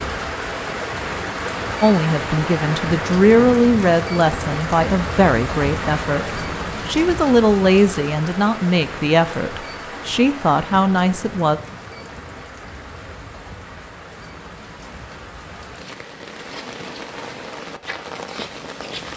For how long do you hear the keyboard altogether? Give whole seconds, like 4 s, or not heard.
not heard.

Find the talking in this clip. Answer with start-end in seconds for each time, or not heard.
1.8-11.6.